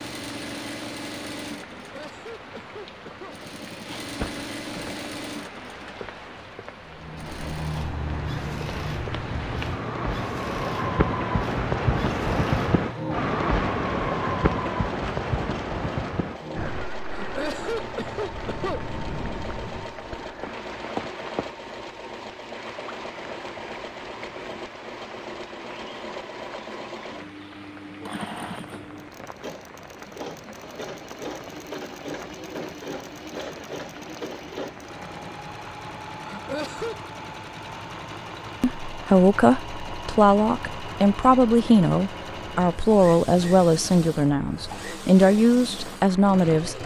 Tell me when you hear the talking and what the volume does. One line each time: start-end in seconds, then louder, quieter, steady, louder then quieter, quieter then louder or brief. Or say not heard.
38.6-46.8 steady.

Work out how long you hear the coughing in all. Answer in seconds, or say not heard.
4 s.